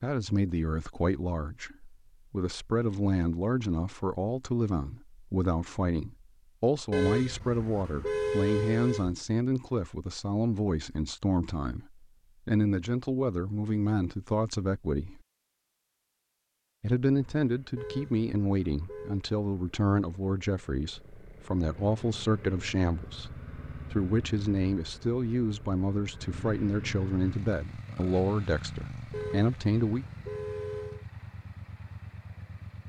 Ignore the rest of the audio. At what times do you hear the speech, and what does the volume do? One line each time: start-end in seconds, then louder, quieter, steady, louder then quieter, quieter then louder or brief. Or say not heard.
0.0-15.2 steady
16.8-30.1 steady.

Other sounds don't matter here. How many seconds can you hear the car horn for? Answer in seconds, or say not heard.
6 s.